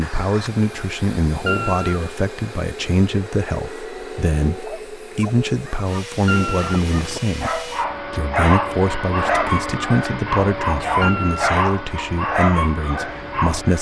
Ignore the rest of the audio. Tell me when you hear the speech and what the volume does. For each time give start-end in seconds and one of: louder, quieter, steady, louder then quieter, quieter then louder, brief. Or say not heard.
0.0-13.7 steady.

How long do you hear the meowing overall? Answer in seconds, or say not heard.
2 s.